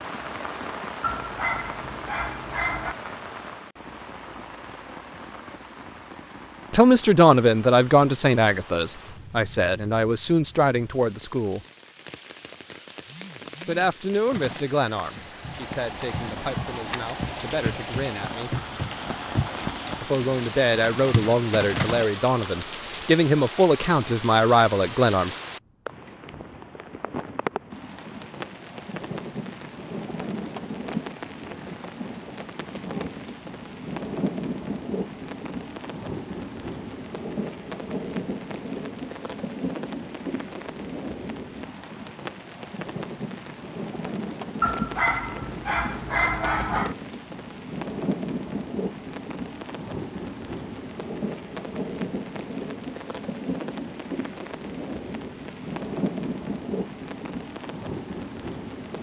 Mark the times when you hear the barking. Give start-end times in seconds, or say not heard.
1.0-3.0, 44.6-47.0.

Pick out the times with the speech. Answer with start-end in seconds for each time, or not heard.
6.7-11.6, 13.7-18.6, 20.0-25.3.